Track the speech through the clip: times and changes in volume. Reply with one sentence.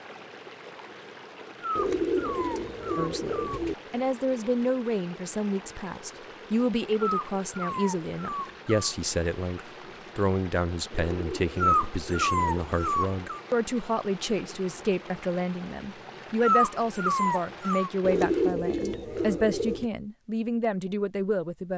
You can hear the speech from 3.0 to 21.7 s, at a steady volume.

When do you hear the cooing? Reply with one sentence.
The cooing can be heard from 1.8 to 3.8 s, from 10.9 to 12.9 s and from 18.0 to 19.9 s.